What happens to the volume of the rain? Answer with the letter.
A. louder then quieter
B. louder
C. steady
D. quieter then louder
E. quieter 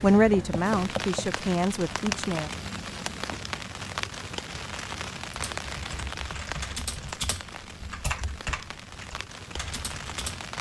E.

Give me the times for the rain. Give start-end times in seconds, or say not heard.
0.0-10.5.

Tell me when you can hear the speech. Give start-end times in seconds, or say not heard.
0.0-2.5.